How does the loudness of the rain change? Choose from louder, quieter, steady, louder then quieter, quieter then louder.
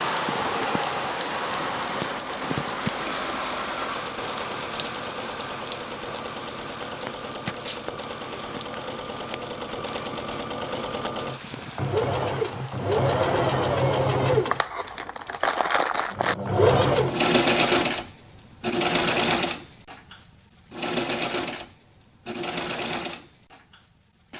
quieter.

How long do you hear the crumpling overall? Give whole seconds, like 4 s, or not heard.
2 s.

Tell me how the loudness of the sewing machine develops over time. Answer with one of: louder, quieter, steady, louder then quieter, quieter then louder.
louder then quieter.